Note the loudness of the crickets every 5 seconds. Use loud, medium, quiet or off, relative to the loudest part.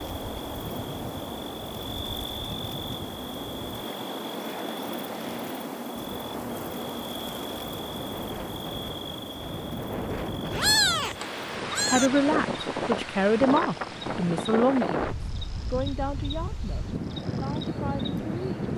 loud, loud, medium, medium.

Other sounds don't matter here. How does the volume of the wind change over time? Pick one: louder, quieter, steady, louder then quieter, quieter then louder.
louder.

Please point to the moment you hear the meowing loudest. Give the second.
11 s.